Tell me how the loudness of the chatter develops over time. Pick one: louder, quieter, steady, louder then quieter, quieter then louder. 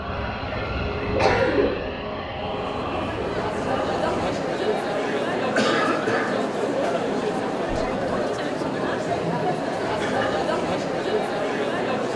steady.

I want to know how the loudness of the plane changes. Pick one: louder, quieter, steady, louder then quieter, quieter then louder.
quieter.